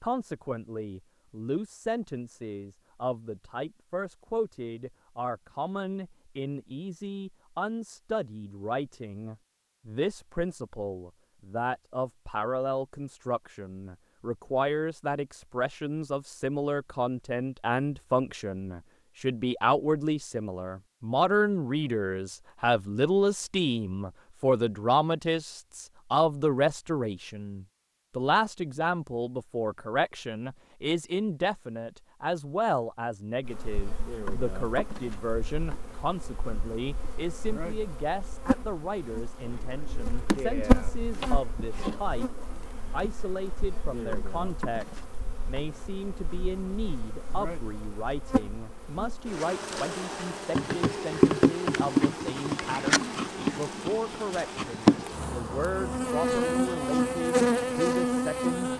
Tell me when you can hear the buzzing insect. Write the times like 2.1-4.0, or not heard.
33.4-58.7.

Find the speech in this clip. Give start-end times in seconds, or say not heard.
0.0-58.7.